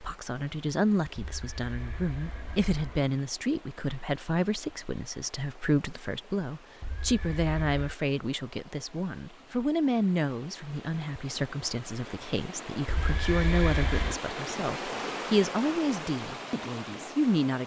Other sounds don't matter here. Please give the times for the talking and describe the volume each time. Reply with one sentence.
The talking can be heard from 0.0 to 17.6 s, at a steady volume.